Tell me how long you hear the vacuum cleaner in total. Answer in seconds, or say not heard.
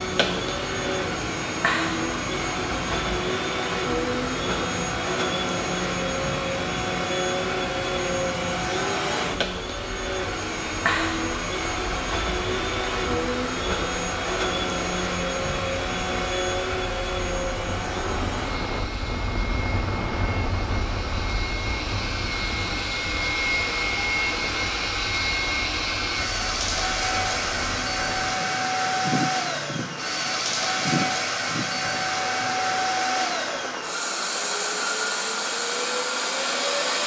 37 s.